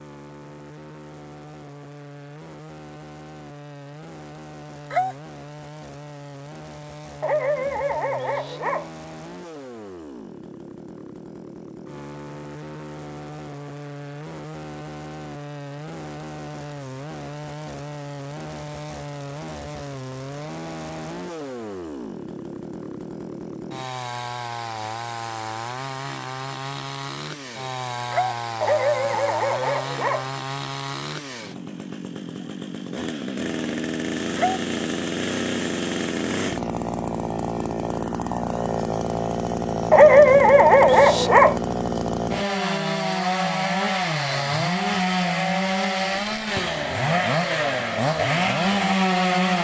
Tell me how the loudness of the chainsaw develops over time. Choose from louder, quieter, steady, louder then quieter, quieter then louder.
louder.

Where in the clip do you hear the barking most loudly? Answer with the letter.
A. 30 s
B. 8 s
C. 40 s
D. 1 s
C.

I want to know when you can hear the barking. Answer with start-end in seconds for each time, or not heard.
7.2-8.9, 28.6-30.2, 39.9-41.6.